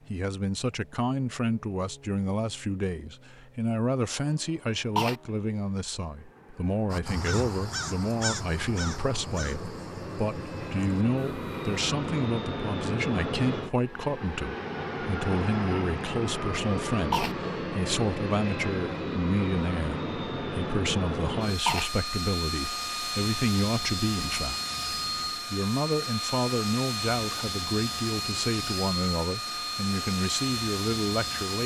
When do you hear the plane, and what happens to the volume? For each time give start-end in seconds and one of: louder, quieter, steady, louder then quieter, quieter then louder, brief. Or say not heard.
0.0-31.6 louder.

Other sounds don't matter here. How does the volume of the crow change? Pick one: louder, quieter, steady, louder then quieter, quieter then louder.
quieter.